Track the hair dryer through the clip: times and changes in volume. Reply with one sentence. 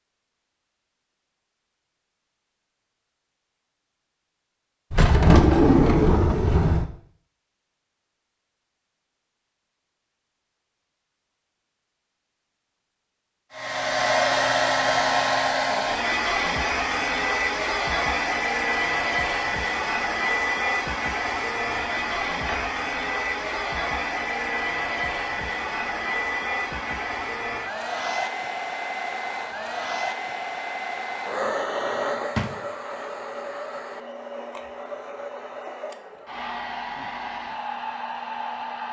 You can hear the hair dryer from 13.6 to 38.8 s, getting quieter.